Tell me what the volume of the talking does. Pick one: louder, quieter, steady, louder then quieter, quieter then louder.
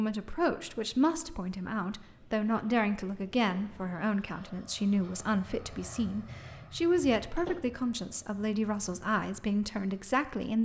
steady.